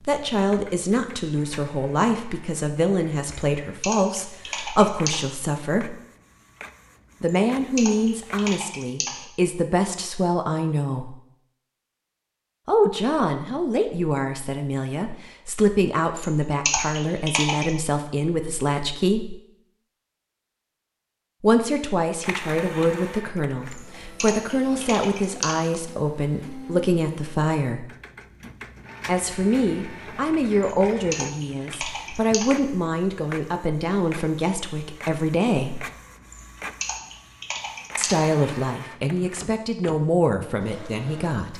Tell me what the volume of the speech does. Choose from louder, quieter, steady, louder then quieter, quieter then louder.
steady.